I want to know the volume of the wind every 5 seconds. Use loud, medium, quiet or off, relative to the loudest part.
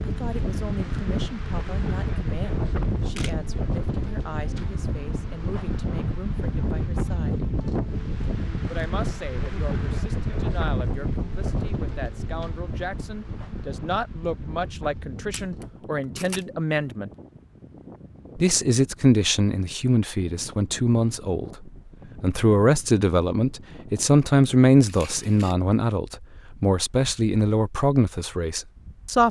loud, loud, loud, quiet, quiet, quiet.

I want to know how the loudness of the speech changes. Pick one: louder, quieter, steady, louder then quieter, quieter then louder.
louder.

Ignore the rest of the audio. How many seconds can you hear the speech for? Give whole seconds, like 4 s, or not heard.
27 s.